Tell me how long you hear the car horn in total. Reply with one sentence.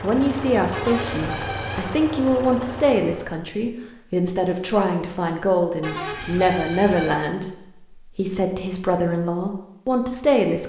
You can hear the car horn for 3 seconds altogether.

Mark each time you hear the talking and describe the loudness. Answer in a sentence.
You can hear the talking from 0.0 to 10.6 s, at a steady volume.